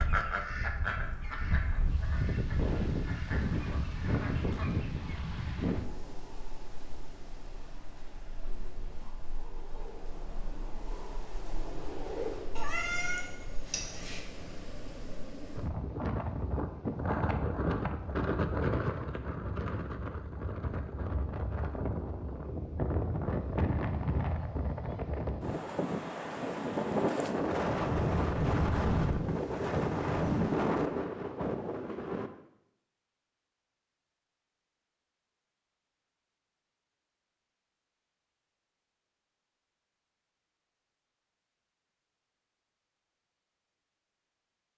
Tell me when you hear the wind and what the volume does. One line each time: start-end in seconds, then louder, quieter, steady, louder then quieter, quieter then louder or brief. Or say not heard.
0.0-32.3 quieter then louder.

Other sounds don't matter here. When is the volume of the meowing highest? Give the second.
13 s.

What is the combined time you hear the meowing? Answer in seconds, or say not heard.
2 s.